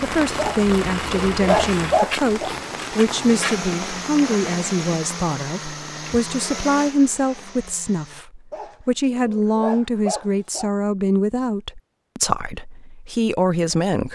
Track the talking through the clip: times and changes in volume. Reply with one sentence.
You can hear the talking from 0.0 to 14.1 s, at a steady volume.